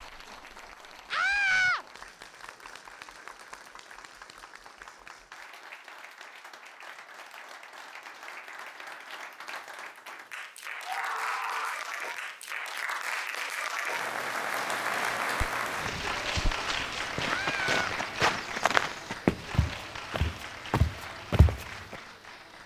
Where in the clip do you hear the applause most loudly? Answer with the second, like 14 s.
15 s.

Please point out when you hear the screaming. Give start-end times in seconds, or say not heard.
1.1-1.9, 10.8-11.8, 17.3-17.8.